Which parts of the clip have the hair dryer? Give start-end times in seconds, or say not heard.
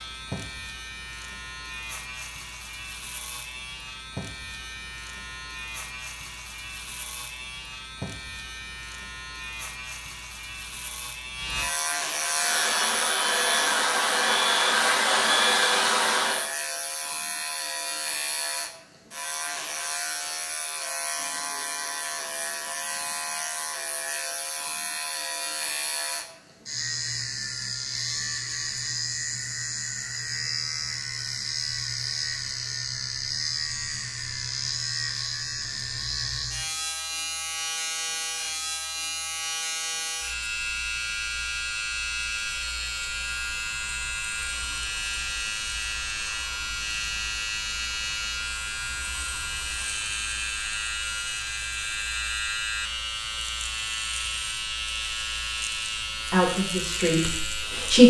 12.3-16.5.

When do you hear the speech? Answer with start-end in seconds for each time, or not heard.
56.3-58.0.